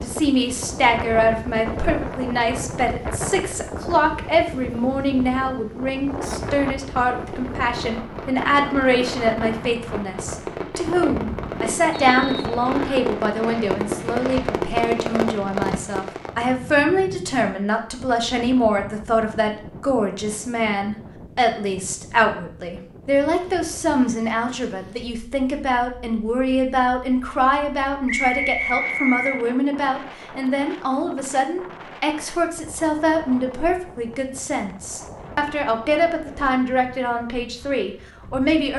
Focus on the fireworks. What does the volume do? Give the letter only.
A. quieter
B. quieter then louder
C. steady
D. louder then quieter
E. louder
E.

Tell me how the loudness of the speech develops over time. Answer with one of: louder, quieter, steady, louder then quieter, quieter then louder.
steady.